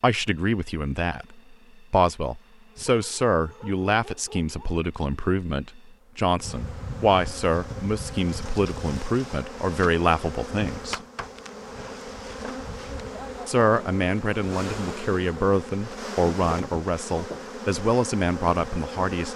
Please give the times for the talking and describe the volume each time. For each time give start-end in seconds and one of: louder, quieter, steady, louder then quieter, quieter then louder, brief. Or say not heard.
0.0-11.0 steady
13.4-19.3 steady.